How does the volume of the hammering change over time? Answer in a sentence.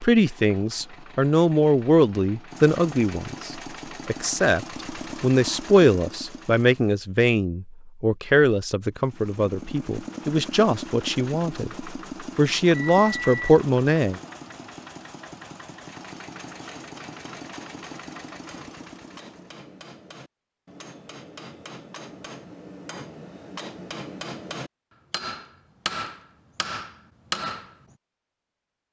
The loudness of the hammering goes up.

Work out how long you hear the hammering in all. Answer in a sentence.
You can hear the hammering for 12 seconds altogether.